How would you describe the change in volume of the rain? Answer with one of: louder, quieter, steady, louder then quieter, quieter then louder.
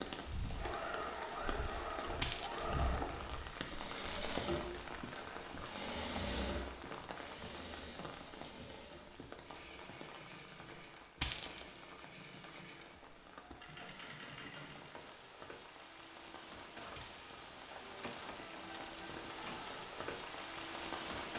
quieter then louder.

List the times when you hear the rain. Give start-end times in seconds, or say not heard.
0.0-21.3.